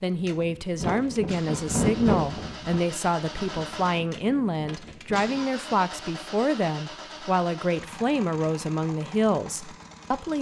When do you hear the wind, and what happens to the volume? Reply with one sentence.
The wind can be heard from 0.3 to 5.5 s, getting louder then quieter.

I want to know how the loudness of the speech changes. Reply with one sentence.
The volume of the speech stays about the same.